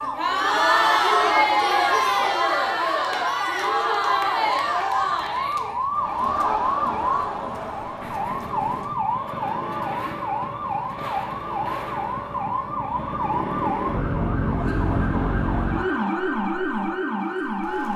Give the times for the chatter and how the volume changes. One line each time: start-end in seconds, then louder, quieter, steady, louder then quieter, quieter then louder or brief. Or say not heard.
0.0-17.9 quieter.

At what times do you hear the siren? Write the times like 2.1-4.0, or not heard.
0.0-17.9.